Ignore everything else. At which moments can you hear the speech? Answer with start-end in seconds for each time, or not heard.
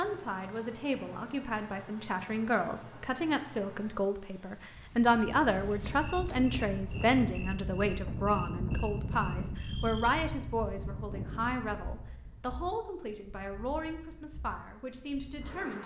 0.0-15.8.